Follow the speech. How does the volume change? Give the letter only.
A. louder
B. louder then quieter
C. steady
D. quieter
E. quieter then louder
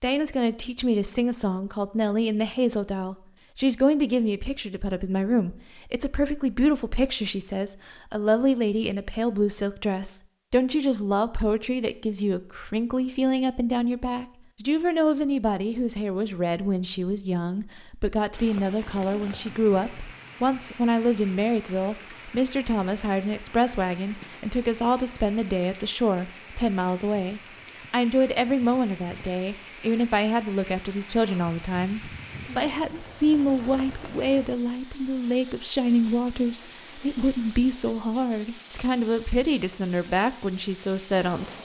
C.